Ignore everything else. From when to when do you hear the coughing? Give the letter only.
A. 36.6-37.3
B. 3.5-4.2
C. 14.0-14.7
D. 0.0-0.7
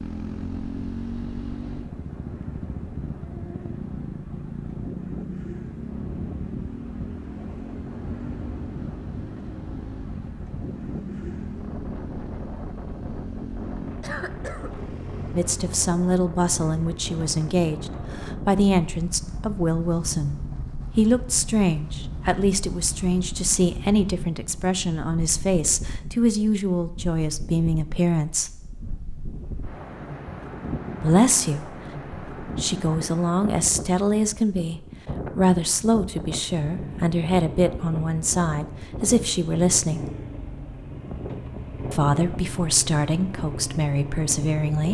C.